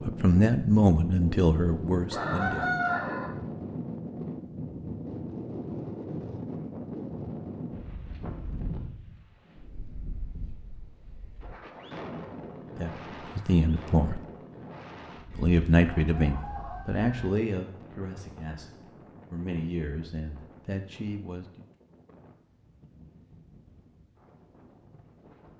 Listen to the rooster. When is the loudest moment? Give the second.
3 s.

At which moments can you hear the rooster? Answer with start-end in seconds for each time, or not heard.
2.1-3.3, 15.3-17.3.